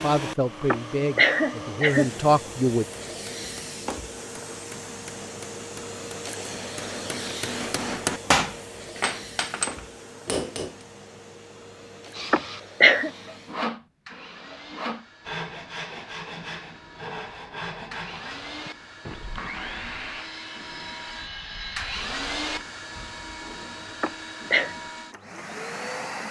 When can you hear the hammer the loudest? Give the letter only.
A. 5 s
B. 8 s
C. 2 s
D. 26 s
B.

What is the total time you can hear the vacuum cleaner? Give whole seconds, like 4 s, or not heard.
26 s.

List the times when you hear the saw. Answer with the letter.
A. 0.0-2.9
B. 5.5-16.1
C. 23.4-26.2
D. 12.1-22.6
D.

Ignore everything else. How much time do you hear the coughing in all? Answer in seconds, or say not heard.
3 s.